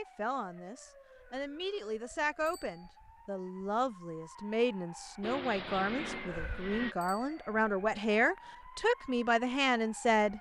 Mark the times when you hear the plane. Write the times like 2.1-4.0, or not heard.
5.2-7.0.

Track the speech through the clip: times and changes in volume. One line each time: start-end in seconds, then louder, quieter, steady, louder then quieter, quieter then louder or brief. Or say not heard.
0.0-10.3 louder.